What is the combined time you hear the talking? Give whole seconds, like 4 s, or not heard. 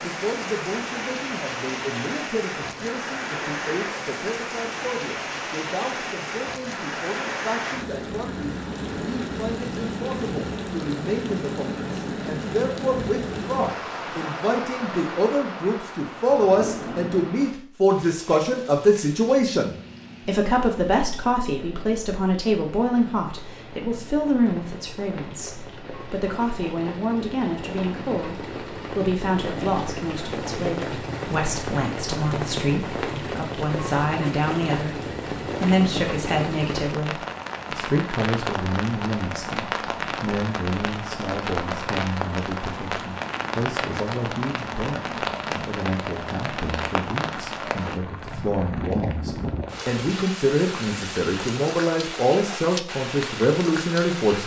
54 s.